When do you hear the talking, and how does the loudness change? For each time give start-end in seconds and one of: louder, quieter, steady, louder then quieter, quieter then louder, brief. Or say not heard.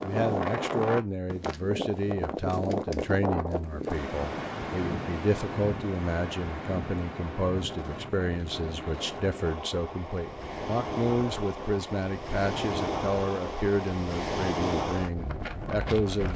0.0-16.3 steady.